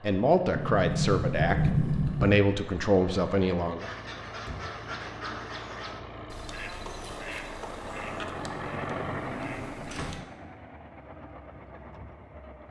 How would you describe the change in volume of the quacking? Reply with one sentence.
The loudness of the quacking goes down.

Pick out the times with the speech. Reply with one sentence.
The speech can be heard from 0.0 to 3.9 s.